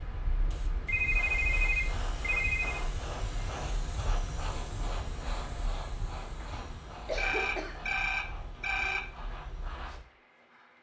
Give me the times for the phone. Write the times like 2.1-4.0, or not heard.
0.8-2.9, 7.2-9.0.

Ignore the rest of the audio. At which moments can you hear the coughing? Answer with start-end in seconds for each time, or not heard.
6.5-7.9.